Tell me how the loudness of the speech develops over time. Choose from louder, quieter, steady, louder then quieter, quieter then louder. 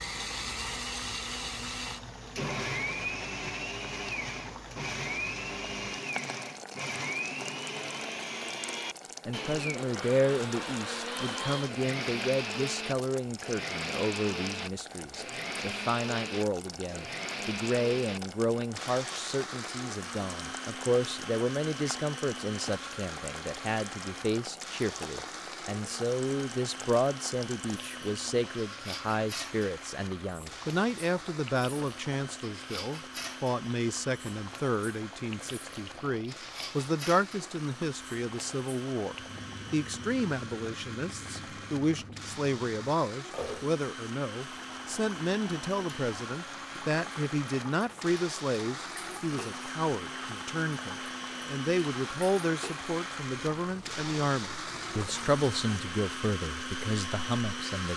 steady.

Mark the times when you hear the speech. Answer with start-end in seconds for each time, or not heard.
9.2-57.9.